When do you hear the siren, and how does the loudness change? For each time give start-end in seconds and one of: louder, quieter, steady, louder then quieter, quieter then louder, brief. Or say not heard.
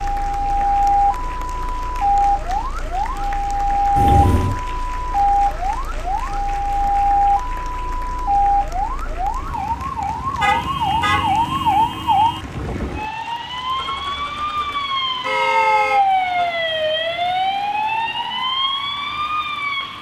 0.0-19.9 steady.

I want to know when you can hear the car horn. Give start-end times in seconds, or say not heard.
4.0-4.5, 10.4-11.3, 13.7-16.4.